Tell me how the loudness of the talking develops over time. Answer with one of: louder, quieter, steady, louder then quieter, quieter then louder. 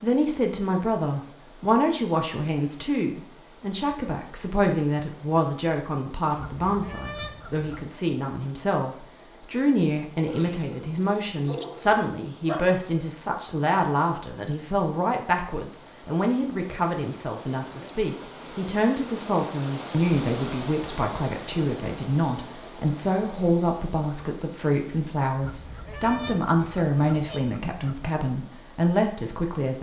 steady.